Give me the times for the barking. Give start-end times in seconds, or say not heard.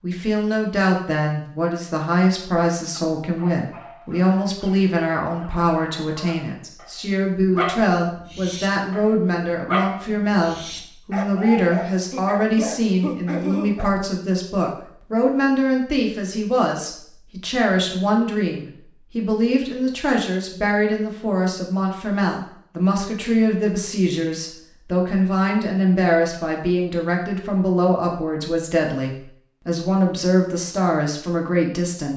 2.9-13.9.